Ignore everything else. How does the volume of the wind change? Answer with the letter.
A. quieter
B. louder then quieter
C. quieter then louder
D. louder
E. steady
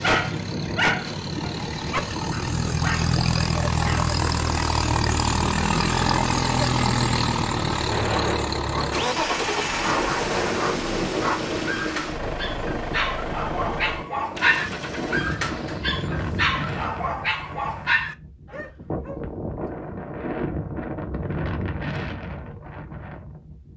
E.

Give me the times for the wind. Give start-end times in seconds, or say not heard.
0.0-23.7.